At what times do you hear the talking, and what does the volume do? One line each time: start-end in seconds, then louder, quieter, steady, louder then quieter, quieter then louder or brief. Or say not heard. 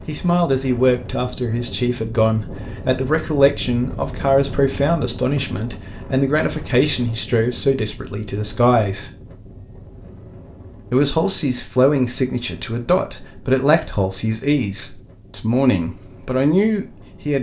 0.1-9.1 steady
10.9-17.3 steady.